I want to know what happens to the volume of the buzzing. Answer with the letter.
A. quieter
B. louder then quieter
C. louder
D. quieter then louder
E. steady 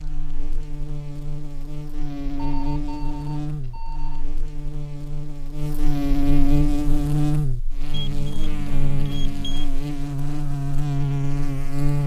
C.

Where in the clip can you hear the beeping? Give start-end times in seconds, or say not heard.
2.4-4.2, 7.9-9.7.